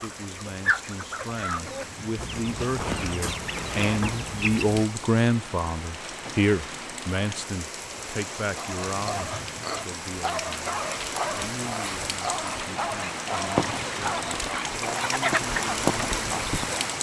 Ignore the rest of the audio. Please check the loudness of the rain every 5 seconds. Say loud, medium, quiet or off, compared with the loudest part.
medium, medium, loud, loud.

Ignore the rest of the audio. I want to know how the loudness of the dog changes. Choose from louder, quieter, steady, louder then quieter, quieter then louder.
steady.